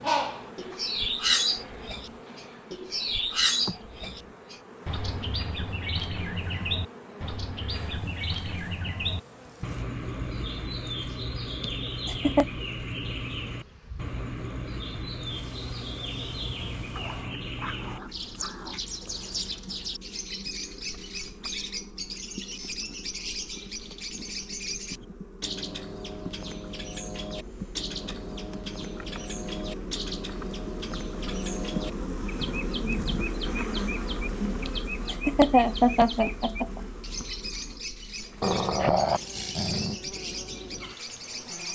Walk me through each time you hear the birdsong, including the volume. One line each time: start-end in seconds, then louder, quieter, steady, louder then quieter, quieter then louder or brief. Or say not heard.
0.0-41.6 quieter.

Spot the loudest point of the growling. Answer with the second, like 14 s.
39 s.